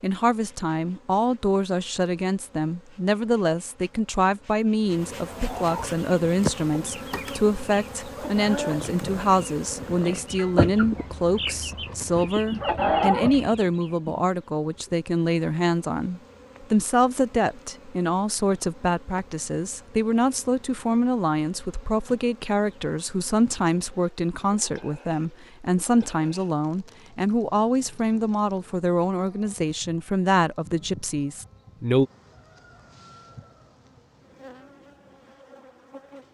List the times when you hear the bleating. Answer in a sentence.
You can't hear the bleating here.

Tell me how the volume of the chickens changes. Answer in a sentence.
The volume of the chickens goes down, then up.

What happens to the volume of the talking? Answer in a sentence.
The volume of the talking stays about the same.